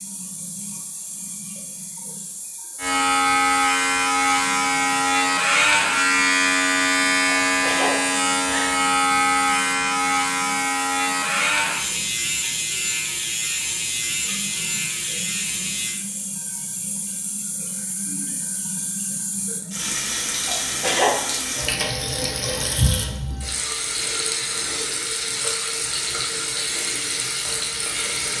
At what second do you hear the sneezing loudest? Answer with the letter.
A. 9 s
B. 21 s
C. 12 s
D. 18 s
B.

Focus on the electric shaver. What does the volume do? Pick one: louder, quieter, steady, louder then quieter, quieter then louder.
quieter.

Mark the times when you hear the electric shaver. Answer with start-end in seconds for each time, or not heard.
2.8-16.0.